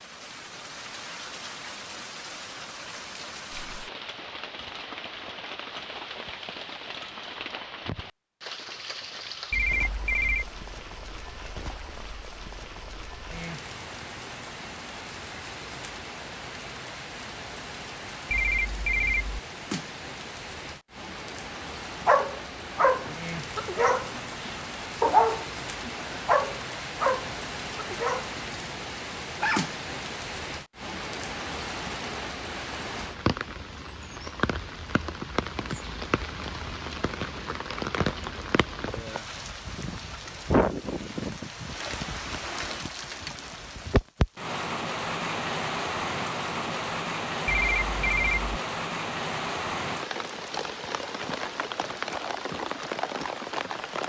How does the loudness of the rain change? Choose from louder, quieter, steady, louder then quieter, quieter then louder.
louder.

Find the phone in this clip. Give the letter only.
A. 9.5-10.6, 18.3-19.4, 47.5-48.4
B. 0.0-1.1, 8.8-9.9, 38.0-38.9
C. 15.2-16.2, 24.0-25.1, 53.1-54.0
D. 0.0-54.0
A.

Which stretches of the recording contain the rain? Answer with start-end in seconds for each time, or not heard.
0.0-54.0.